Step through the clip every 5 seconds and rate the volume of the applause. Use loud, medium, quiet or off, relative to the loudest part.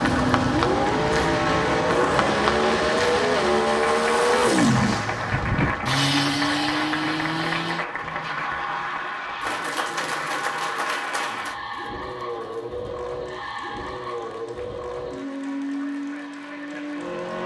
loud, loud, medium, quiet.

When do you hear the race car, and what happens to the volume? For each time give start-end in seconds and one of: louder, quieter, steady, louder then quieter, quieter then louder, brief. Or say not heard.
0.0-17.4 quieter.